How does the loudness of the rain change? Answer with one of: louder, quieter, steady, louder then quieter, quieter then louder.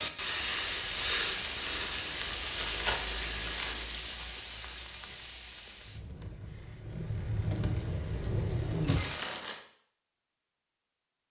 quieter then louder.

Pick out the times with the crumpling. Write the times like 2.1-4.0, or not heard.
2.5-3.8, 8.8-9.6.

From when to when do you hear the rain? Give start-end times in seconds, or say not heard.
0.0-9.0.